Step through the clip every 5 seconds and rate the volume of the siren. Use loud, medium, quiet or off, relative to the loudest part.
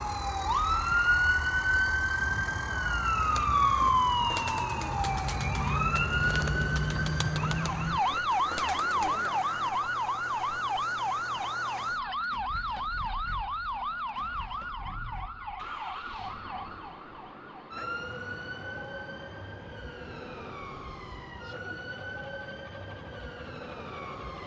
loud, loud, medium, quiet, quiet.